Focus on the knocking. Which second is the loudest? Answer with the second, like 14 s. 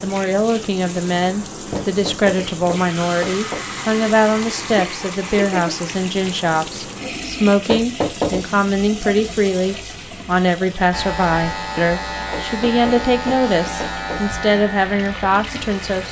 8 s.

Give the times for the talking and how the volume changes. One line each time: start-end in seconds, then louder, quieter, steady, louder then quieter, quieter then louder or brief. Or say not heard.
0.0-16.0 steady.